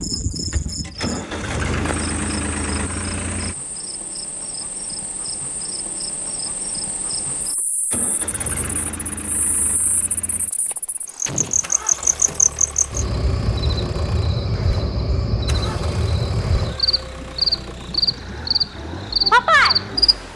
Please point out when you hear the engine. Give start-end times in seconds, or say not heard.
0.0-3.5, 7.9-20.3.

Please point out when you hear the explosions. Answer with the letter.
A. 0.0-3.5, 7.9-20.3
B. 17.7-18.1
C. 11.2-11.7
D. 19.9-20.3
C.